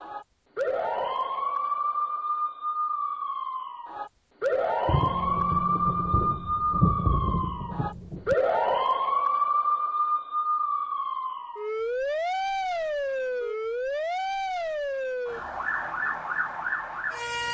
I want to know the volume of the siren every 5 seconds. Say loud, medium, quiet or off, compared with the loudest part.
loud, loud, loud, medium.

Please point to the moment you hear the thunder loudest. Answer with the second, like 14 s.
7 s.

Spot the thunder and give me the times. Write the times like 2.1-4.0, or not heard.
4.8-8.3.